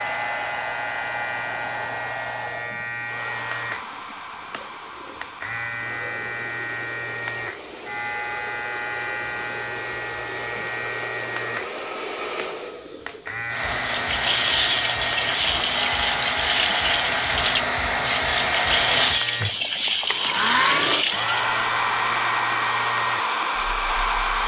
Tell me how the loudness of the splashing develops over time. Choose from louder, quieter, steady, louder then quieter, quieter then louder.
steady.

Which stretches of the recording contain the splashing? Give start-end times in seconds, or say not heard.
13.9-21.4.